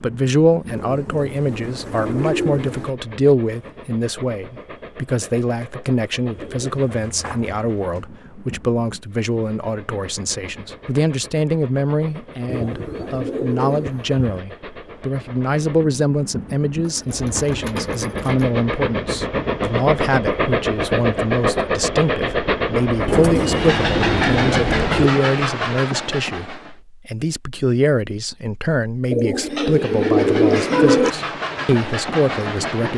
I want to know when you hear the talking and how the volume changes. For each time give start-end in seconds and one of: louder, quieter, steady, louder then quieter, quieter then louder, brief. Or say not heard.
0.0-32.9 steady.